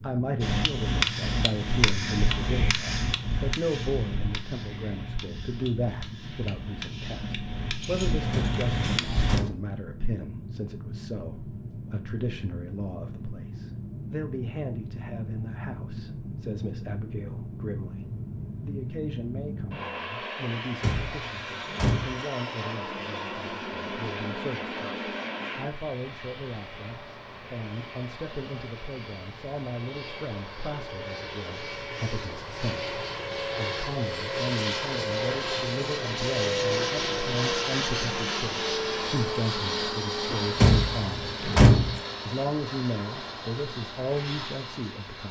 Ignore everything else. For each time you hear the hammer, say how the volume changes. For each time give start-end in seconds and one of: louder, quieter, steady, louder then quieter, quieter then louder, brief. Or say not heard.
0.4-9.4 quieter then louder.